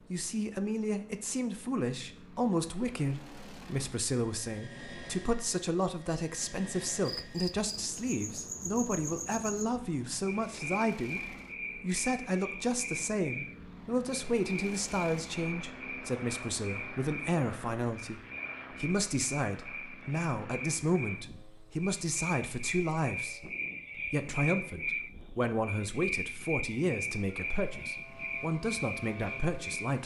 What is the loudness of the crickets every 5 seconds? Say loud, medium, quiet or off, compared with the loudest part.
off, loud, loud, medium, loud, loud.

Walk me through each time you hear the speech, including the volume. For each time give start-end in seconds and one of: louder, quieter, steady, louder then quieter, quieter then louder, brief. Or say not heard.
0.1-30.0 steady.